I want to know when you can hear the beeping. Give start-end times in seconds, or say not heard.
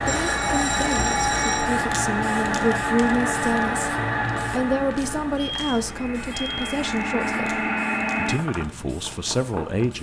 0.1-1.7, 5.3-6.8.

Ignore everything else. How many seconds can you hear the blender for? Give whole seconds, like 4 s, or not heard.
10 s.